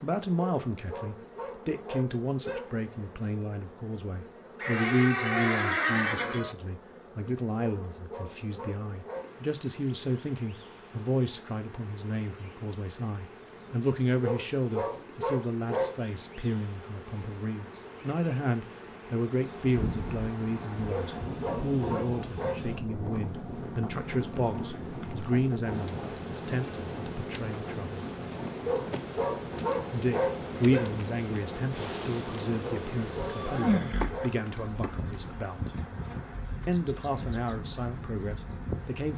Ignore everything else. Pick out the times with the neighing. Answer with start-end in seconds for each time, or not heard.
4.6-6.5, 33.3-35.2.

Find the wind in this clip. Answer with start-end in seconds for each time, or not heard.
19.4-39.1.